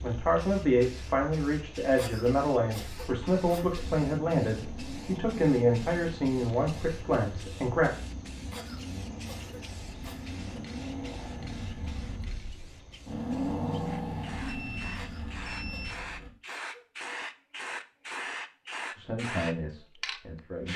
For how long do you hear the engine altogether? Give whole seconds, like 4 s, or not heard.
13 s.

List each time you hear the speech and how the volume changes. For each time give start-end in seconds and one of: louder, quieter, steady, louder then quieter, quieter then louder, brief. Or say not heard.
0.0-7.9 steady
18.9-20.7 brief.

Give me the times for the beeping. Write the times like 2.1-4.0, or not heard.
14.4-16.0.